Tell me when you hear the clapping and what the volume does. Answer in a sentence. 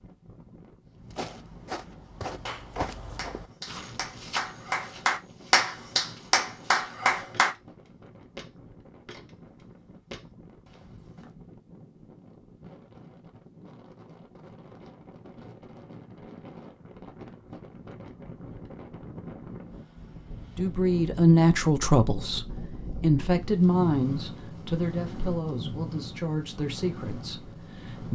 The clapping can be heard from 2.5 to 7.5 s, getting louder.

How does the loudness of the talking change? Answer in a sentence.
The volume of the talking goes down.